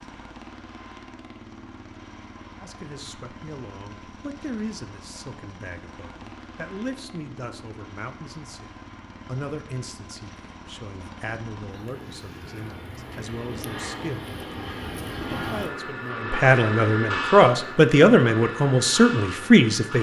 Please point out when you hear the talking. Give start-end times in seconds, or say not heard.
2.6-19.9.